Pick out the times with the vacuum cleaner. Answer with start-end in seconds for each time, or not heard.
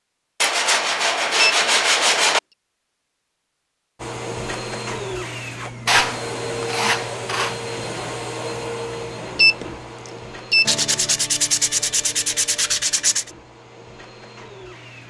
4.0-15.0.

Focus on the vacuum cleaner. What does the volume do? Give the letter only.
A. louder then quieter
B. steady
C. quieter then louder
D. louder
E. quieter
E.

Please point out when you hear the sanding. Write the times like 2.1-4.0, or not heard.
0.4-2.4, 5.8-7.5, 10.7-13.3.